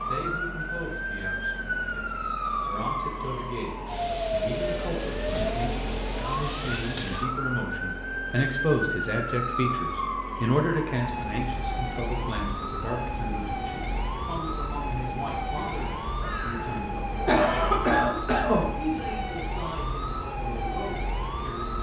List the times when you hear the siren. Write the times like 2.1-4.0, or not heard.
0.0-21.7.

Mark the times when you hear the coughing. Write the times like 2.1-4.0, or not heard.
16.2-18.6.